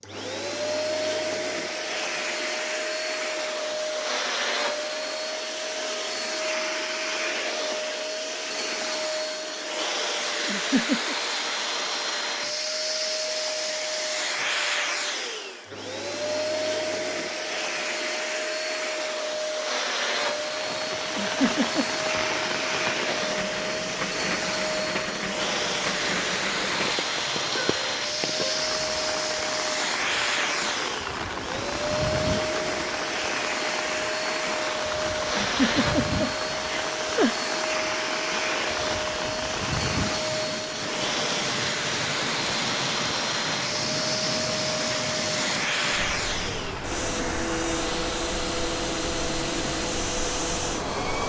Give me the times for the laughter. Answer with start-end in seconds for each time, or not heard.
10.4-11.2, 21.1-21.9, 35.4-37.3.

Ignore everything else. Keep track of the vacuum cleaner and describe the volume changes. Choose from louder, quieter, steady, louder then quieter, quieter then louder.
steady.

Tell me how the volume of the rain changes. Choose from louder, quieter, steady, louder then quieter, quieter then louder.
steady.